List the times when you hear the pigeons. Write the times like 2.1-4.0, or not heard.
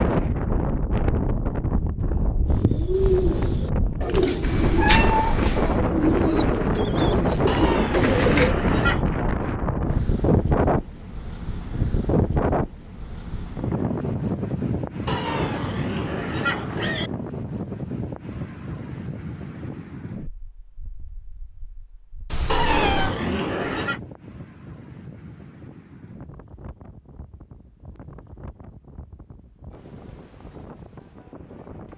2.5-8.6.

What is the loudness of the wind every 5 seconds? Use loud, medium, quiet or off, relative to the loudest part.
loud, loud, loud, medium, quiet, quiet, quiet.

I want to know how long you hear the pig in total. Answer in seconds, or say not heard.
5 s.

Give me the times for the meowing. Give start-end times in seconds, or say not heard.
4.4-5.8, 22.3-23.1.